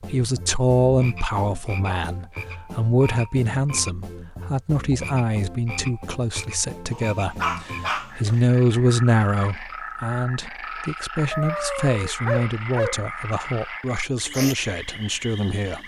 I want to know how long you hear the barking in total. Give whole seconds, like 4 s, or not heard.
4 s.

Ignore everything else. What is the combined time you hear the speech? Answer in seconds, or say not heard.
16 s.